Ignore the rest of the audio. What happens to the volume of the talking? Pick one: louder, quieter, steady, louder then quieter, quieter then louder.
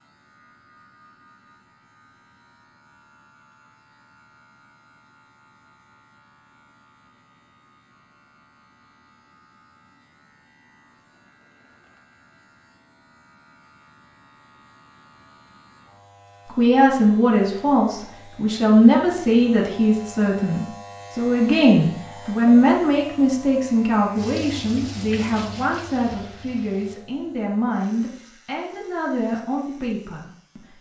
quieter.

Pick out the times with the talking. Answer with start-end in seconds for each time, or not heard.
16.6-30.6.